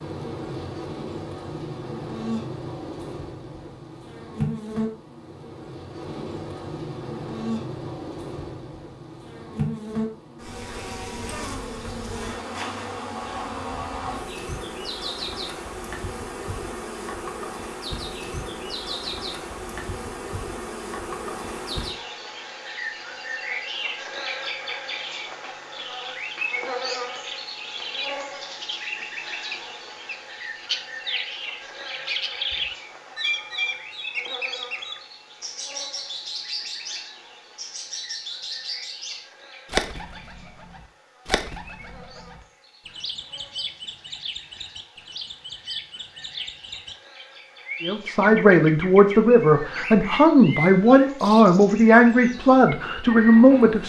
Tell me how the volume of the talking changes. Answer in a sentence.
The loudness of the talking stays about the same.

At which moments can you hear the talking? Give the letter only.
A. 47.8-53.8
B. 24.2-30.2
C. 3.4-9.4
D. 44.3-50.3
A.